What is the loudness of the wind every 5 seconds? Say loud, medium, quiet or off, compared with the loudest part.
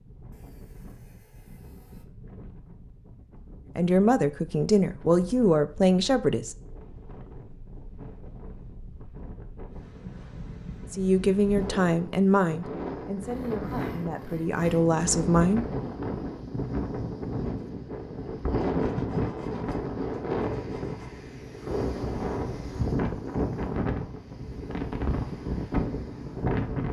quiet, quiet, medium, loud, loud, loud.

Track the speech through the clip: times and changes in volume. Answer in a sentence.
The speech can be heard briefly from 3.8 to 6.5 s; and from 10.9 to 15.7 s, getting quieter then louder.